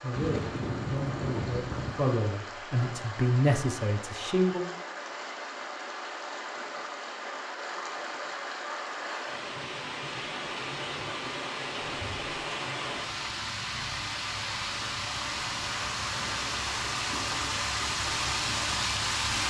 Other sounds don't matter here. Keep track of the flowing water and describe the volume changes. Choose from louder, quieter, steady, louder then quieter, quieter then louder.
louder.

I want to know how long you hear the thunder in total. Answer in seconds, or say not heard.
2 s.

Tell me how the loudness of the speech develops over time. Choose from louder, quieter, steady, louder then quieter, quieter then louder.
louder.